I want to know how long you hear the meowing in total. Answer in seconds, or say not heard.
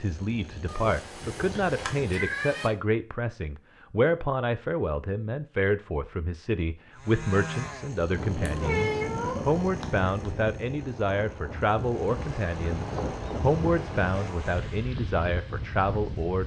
4 s.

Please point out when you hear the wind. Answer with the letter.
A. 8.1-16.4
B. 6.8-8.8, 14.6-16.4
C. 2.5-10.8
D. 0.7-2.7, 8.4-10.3
A.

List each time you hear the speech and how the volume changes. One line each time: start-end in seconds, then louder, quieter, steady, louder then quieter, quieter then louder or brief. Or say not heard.
0.0-16.4 steady.